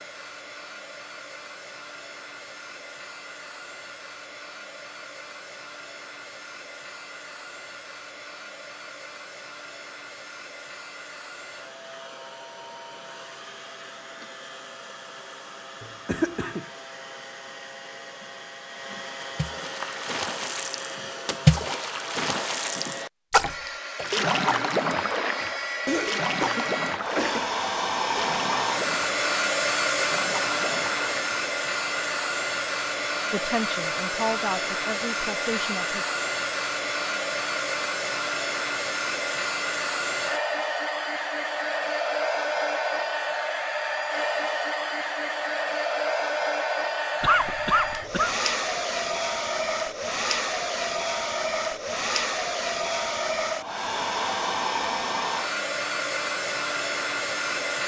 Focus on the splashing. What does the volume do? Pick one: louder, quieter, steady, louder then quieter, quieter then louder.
quieter.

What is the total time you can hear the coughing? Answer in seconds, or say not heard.
4 s.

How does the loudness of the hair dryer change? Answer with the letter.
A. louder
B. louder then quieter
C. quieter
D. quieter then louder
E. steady
A.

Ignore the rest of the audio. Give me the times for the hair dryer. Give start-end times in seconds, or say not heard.
0.0-57.8.